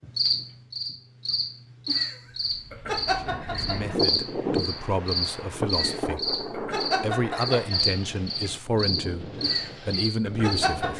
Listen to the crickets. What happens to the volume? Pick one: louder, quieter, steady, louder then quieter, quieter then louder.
steady.